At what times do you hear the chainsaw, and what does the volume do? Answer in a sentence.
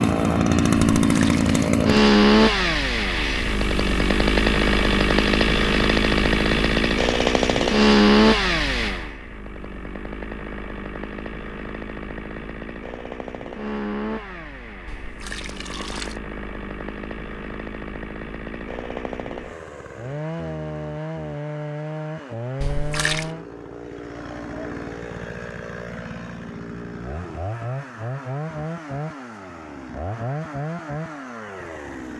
You can hear the chainsaw from 0.0 to 32.1 s, getting quieter.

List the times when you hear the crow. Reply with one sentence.
The crow can't be heard in this clip.